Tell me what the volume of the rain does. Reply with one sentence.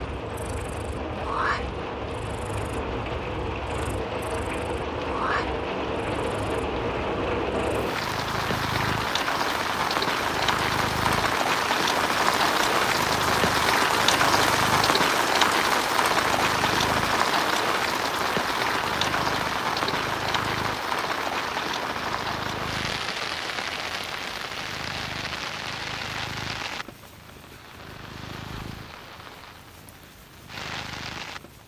The volume of the rain goes up, then down.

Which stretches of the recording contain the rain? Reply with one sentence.
You can hear the rain from 0.0 to 31.6 s.